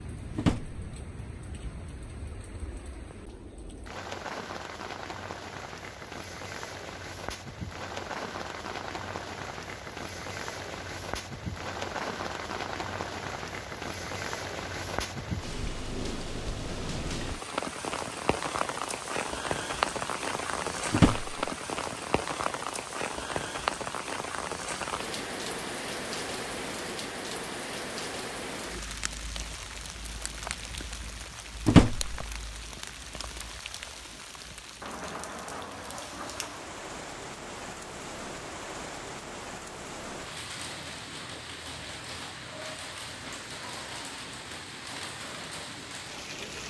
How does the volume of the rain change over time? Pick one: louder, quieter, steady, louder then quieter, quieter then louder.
louder then quieter.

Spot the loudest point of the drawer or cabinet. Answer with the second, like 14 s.
32 s.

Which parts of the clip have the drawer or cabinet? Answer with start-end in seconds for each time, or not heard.
0.3-0.8, 20.9-21.4, 31.6-32.1.